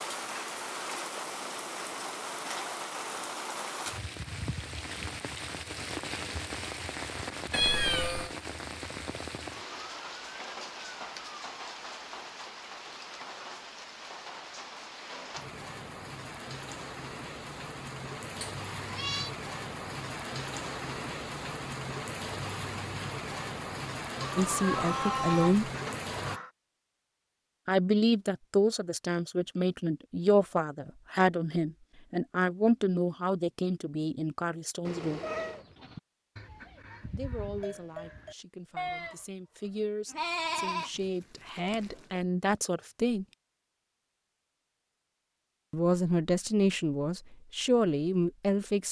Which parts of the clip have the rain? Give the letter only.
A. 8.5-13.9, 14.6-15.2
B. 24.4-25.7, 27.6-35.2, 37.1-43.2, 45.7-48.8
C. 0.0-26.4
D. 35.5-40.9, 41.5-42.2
C.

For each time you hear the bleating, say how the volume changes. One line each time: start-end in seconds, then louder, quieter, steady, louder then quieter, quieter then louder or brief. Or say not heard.
35.5-40.9 louder
41.5-42.2 brief.